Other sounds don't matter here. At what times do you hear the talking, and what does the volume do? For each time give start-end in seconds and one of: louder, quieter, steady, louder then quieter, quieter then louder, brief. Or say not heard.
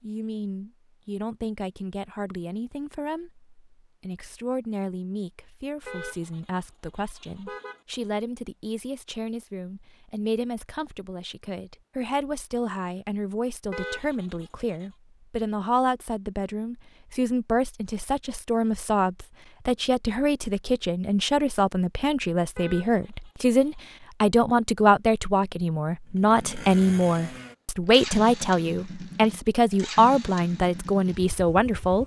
0.0-32.0 louder.